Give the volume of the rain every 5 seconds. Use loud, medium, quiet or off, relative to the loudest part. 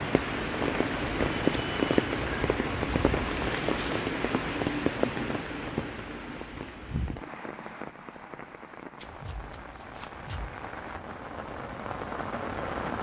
loud, medium, medium.